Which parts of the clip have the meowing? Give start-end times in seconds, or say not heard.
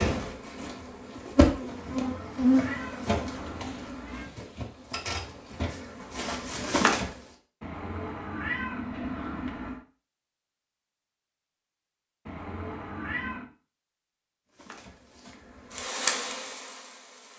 1.8-4.3, 7.6-9.8, 12.2-13.5.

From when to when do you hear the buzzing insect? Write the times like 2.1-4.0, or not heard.
0.0-7.2, 14.5-17.3.